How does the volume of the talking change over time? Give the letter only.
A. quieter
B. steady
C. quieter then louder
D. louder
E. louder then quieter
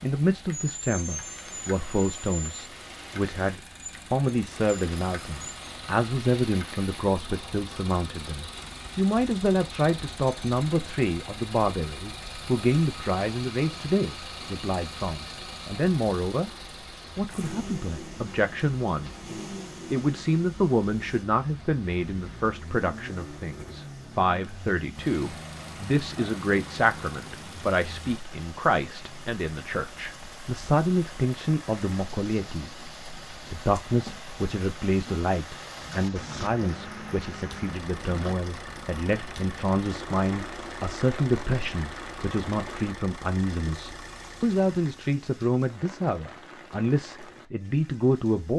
B.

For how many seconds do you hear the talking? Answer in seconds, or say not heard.
47 s.